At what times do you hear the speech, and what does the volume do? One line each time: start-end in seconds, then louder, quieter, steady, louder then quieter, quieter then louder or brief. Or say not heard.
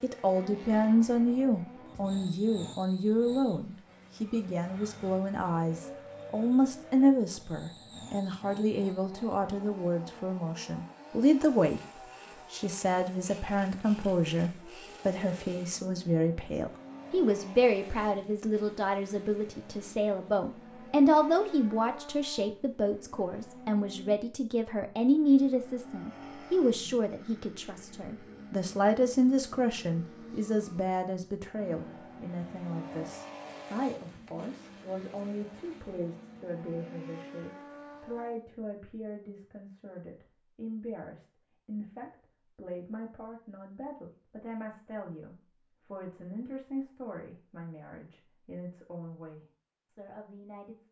0.0-50.8 quieter.